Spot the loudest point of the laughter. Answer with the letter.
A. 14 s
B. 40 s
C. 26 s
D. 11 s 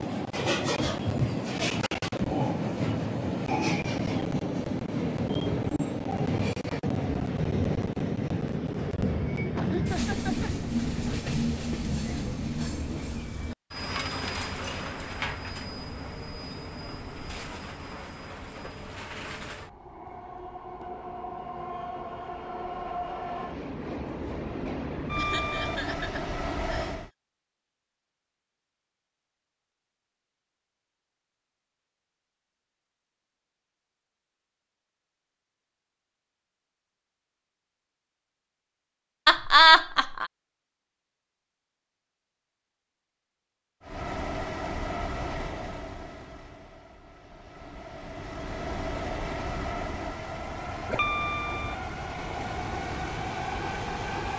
B.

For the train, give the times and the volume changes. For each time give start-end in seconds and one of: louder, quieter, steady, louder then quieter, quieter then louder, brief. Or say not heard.
0.0-27.1 quieter then louder
43.8-54.3 quieter then louder.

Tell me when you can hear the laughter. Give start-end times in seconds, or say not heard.
9.5-10.5, 25.1-26.9, 39.2-40.3.